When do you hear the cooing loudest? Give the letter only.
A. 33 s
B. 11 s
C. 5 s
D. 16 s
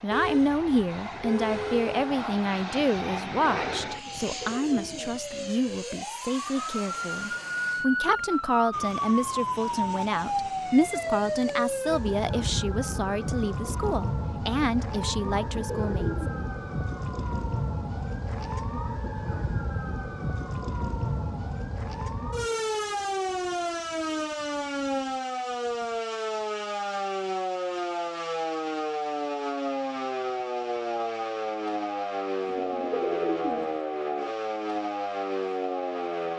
A.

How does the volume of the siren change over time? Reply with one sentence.
The volume of the siren stays about the same.